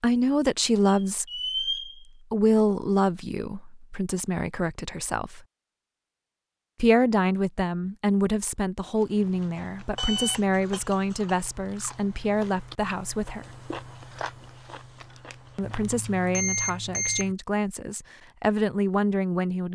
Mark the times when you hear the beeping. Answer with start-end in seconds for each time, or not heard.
0.8-2.0, 9.9-11.3, 15.6-17.4.